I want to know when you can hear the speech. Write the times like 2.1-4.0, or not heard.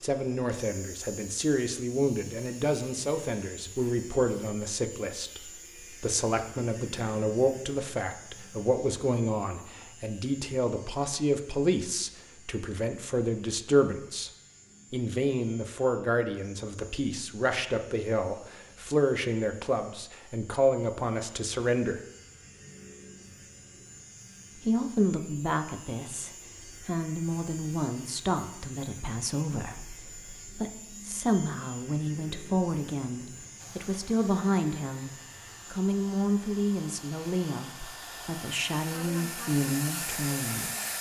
0.0-14.3, 14.9-22.0, 24.6-40.7.